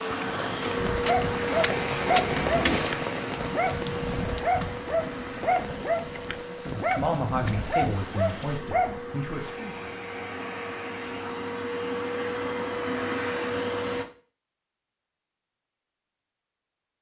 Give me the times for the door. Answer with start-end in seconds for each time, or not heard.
2.2-3.0.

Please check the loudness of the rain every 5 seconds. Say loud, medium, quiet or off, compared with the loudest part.
loud, medium, off, off.